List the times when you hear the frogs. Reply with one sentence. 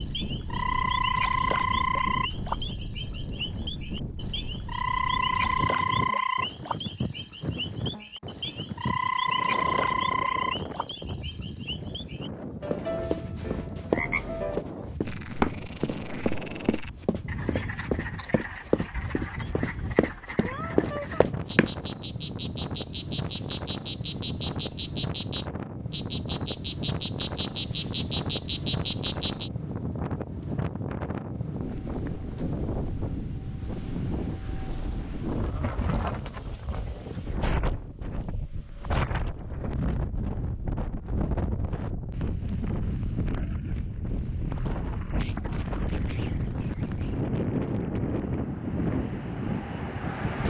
You can hear the frogs from 0.0 to 29.5 s.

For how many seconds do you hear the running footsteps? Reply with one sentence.
You can hear the running footsteps for 9 seconds altogether.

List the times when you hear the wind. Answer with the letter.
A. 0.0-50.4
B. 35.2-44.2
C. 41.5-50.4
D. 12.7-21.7
A.